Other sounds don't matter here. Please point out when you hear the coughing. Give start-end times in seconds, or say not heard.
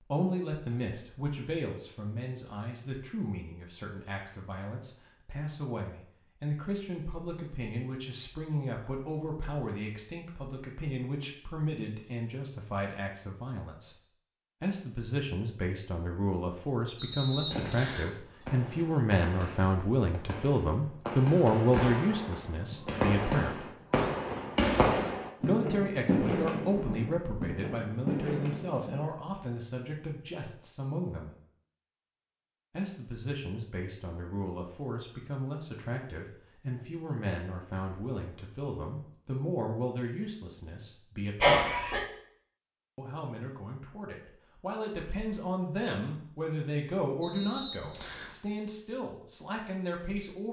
41.4-42.0.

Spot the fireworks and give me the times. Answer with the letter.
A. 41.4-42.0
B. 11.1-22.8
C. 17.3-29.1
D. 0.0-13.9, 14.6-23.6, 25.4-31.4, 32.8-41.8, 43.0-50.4
C.